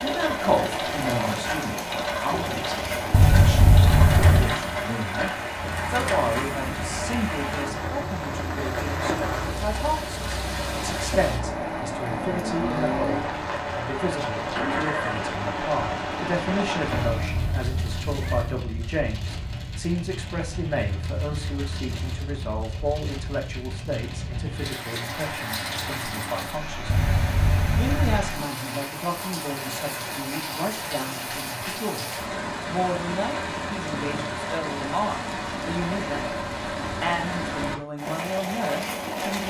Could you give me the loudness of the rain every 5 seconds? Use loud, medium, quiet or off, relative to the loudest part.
loud, loud, loud, loud, medium, loud, loud, loud.